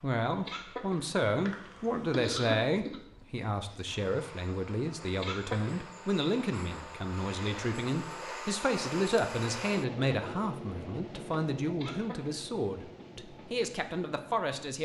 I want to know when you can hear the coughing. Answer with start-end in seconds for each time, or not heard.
0.5-3.0, 5.2-5.8, 11.8-12.4.